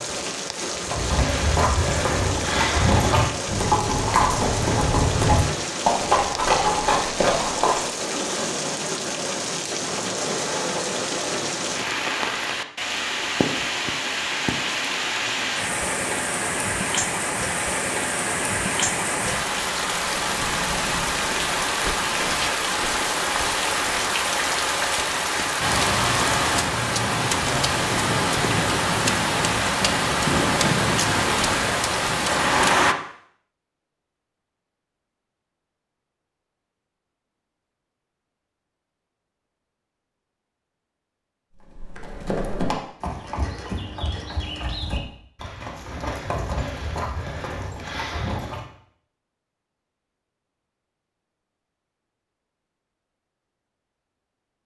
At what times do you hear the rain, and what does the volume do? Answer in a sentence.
The rain can be heard from 0.0 to 33.0 s, getting louder.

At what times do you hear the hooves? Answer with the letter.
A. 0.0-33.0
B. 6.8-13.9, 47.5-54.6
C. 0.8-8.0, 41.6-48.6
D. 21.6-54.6
C.